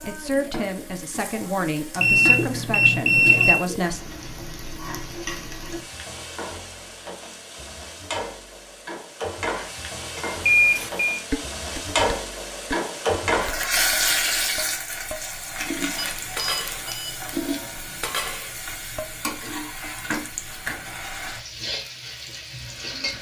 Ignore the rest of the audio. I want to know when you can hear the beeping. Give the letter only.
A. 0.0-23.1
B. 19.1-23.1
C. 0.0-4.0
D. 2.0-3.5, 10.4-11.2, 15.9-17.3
D.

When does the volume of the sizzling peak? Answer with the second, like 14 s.
14 s.